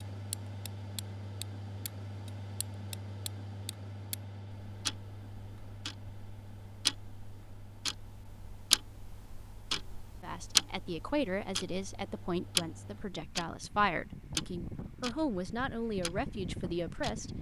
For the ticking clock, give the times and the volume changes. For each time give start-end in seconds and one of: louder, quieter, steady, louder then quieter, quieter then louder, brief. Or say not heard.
0.0-17.2 louder then quieter.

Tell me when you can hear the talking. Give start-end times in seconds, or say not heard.
10.2-17.3.